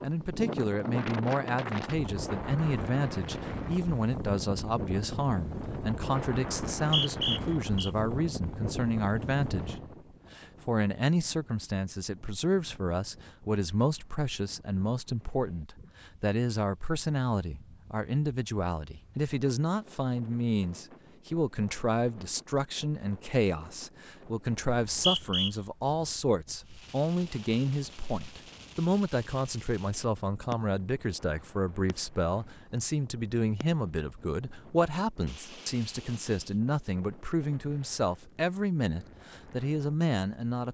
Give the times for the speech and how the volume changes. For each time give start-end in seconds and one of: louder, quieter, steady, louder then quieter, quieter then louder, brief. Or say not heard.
0.0-9.8 steady
10.3-40.6 steady.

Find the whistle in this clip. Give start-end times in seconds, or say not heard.
6.8-7.9, 24.6-25.5.